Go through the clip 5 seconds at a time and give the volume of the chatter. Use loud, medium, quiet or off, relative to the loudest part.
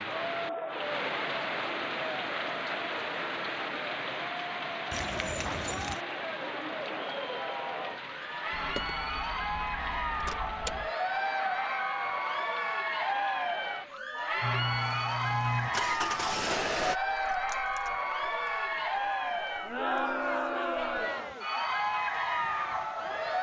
medium, medium, loud, loud, loud.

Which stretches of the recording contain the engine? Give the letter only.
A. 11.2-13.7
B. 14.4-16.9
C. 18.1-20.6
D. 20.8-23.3
B.